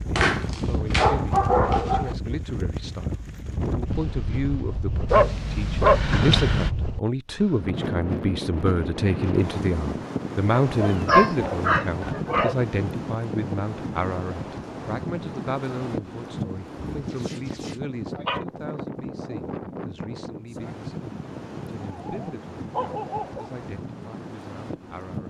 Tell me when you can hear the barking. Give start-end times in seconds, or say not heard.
0.1-2.1, 5.0-6.7, 10.8-12.6, 16.9-18.4, 21.9-23.5.